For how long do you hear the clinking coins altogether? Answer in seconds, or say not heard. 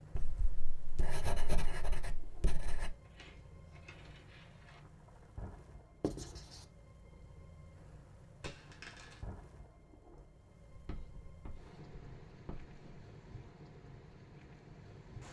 3 s.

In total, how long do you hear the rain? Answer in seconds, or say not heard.
15 s.